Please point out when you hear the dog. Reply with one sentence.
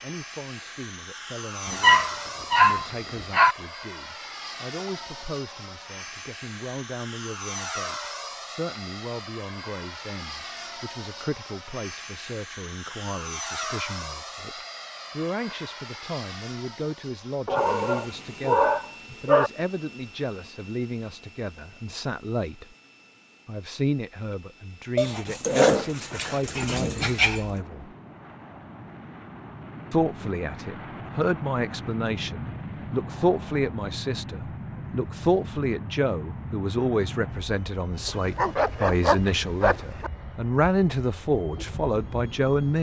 You can hear the dog from 1.7 to 3.5 s, from 17.4 to 19.5 s, from 24.9 to 27.6 s and from 38.0 to 40.1 s.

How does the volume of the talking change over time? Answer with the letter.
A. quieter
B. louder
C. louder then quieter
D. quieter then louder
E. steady
B.